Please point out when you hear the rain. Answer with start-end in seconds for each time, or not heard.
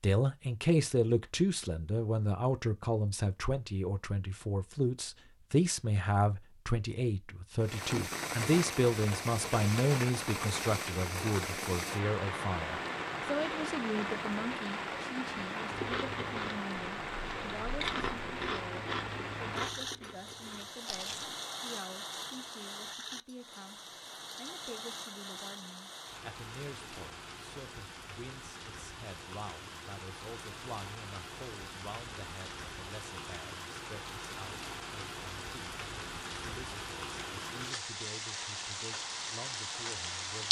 7.6-40.4.